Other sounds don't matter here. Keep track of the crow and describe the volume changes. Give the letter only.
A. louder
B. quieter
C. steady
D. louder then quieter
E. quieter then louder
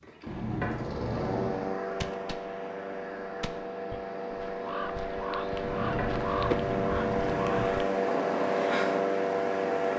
A.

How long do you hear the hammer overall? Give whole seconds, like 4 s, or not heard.
not heard.